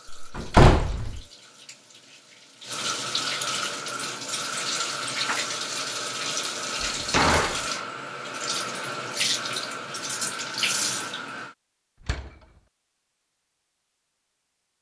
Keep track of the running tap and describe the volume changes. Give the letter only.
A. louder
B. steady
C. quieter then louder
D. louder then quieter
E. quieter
A.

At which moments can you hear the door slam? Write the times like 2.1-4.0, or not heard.
0.1-1.2, 6.8-7.7, 12.0-12.4.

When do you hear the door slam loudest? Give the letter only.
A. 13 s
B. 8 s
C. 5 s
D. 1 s
D.